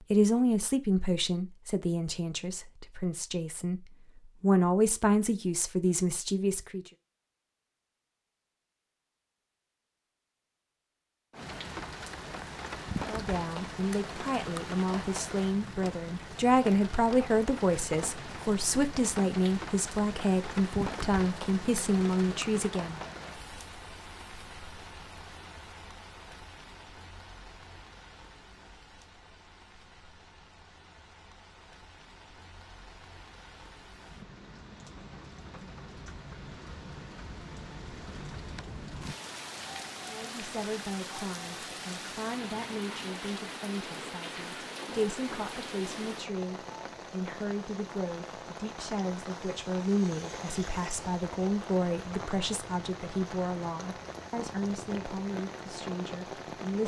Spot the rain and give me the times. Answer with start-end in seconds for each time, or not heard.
11.3-56.8.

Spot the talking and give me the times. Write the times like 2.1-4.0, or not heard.
0.0-6.8, 13.1-23.0, 40.0-56.8.